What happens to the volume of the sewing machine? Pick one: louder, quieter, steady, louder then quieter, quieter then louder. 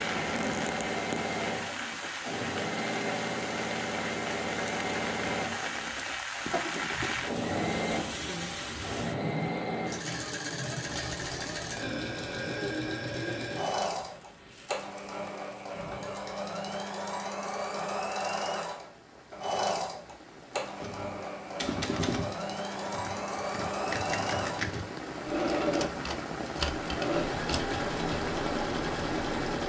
steady.